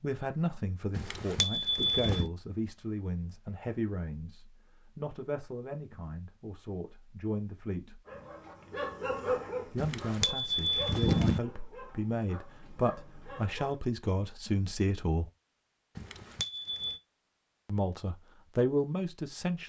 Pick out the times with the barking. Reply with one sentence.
You can hear the barking from 8.1 to 13.8 s.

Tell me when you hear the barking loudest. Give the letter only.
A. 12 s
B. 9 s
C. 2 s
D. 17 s
B.